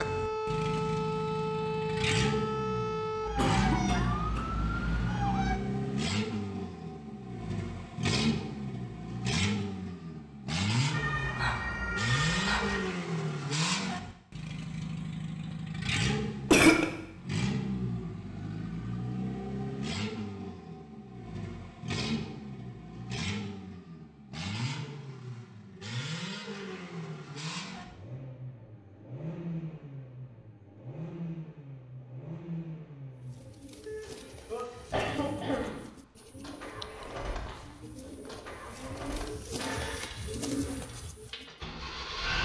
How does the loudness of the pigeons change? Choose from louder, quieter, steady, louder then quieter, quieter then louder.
louder.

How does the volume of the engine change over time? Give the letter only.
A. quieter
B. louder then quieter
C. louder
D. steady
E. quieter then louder
A.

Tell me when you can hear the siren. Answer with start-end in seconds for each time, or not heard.
0.0-5.6, 10.9-12.8.